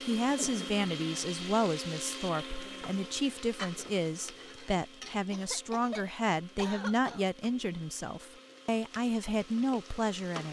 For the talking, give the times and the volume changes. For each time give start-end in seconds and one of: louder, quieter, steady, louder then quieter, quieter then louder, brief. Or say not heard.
0.1-10.4 steady.